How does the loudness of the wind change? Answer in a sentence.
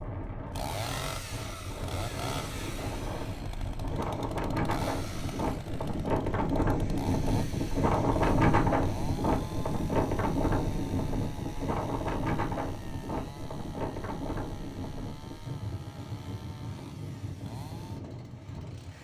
The volume of the wind goes up, then down.